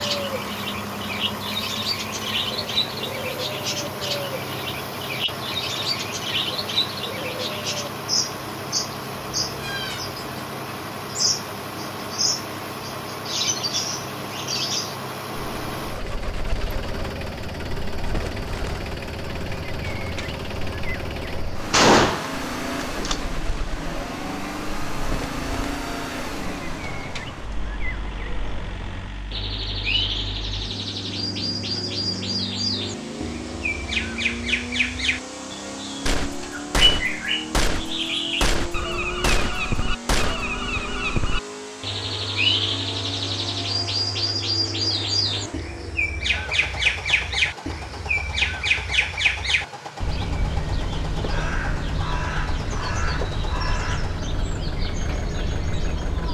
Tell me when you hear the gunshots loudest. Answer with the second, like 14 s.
22 s.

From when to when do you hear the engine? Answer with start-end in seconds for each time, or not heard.
0.0-56.2.